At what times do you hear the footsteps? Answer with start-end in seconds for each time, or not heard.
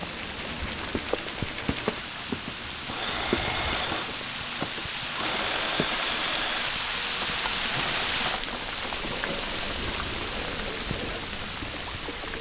0.0-5.9.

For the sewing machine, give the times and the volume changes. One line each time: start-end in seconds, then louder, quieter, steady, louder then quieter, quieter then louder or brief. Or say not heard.
0.0-12.3 louder then quieter.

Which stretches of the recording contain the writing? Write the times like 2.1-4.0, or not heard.
not heard.